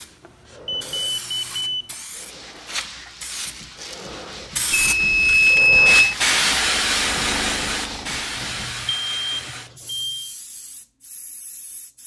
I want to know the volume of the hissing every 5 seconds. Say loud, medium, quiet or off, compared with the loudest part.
medium, loud, quiet.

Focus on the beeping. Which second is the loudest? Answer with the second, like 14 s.
6 s.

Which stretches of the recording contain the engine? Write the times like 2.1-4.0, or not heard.
6.5-8.7.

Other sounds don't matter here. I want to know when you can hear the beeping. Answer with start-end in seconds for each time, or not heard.
0.2-1.9, 4.7-6.2, 8.3-10.3.